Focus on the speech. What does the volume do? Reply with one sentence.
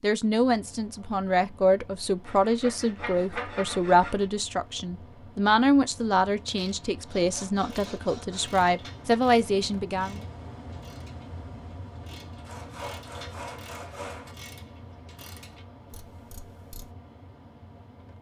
The loudness of the speech stays about the same.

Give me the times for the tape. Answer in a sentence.
You can't hear the tape here.